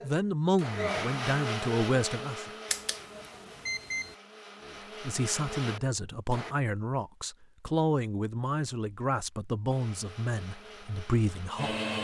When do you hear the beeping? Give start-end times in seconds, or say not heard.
2.7-4.2.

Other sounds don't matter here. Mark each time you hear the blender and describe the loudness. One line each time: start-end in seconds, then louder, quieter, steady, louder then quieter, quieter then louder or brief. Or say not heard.
0.0-6.5 quieter then louder
9.7-11.9 brief.